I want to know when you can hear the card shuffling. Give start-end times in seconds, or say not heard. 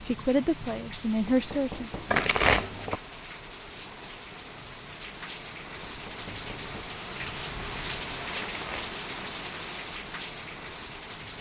2.0-3.0, 8.3-9.0.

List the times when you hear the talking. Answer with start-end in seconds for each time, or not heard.
0.1-1.9.